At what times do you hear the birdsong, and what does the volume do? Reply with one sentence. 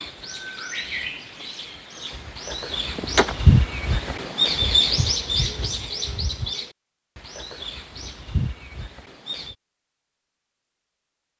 You can hear the birdsong from 0.0 to 9.6 s, getting louder then quieter.